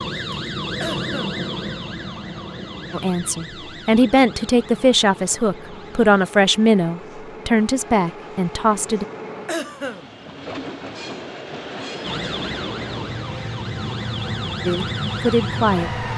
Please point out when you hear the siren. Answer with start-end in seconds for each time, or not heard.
0.0-6.3, 12.0-16.1.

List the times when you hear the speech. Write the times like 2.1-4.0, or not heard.
2.9-9.1, 14.7-15.9.